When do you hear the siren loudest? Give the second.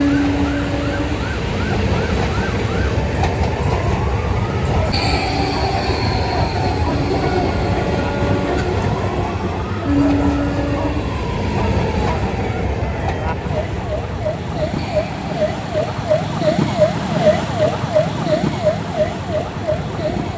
17 s.